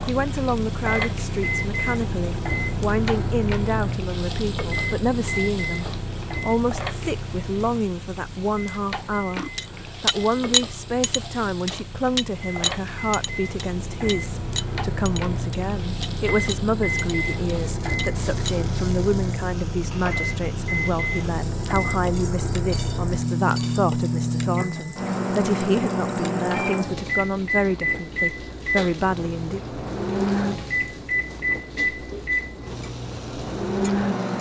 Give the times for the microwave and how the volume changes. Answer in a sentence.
You can hear the microwave from 0.0 to 34.3 s, getting quieter then louder.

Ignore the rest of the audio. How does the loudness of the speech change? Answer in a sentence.
The loudness of the speech stays about the same.